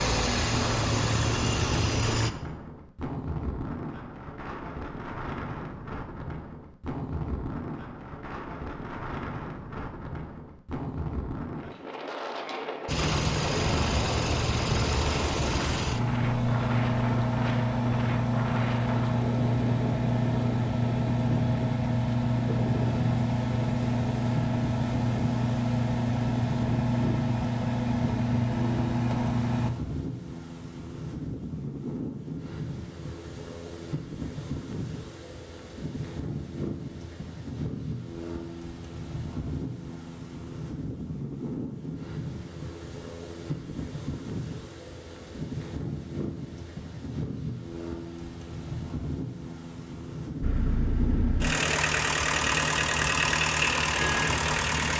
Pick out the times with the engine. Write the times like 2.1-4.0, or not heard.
0.0-2.3, 12.8-29.7, 50.4-54.9.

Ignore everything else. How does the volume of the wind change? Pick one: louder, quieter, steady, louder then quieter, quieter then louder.
steady.